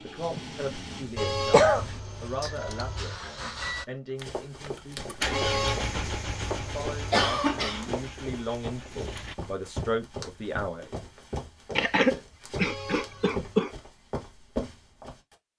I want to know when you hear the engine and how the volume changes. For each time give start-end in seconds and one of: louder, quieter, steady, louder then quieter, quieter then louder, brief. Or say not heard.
0.0-9.3 louder then quieter.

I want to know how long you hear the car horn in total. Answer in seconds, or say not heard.
5 s.